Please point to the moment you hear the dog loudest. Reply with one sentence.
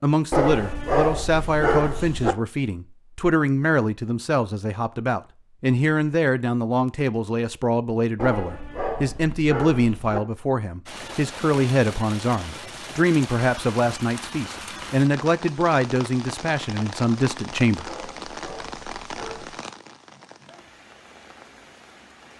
The volume of the dog peaks at 1 second.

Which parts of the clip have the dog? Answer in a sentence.
The dog can be heard from 0.3 to 2.4 s, from 8.2 to 10.2 s and from 17.9 to 19.6 s.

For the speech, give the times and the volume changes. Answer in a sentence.
The speech can be heard from 0.0 to 17.9 s, at a steady volume.